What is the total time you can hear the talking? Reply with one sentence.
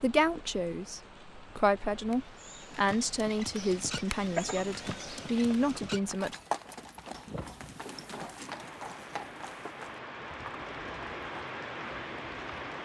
You can hear the talking for 6 seconds altogether.